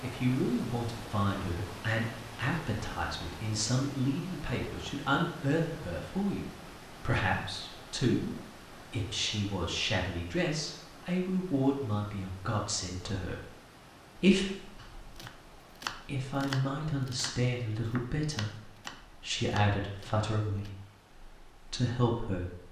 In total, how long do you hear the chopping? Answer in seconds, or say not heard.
6 s.